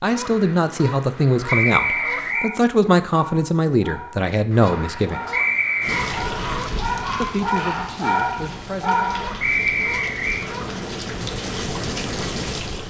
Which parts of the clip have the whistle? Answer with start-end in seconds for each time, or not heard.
1.4-2.5, 5.3-6.2, 9.4-10.4.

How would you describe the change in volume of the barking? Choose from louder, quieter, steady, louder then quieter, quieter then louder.
louder.